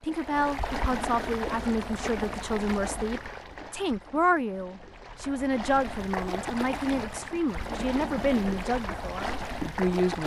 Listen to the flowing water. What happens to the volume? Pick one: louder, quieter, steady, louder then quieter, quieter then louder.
quieter then louder.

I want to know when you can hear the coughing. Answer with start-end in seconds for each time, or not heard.
not heard.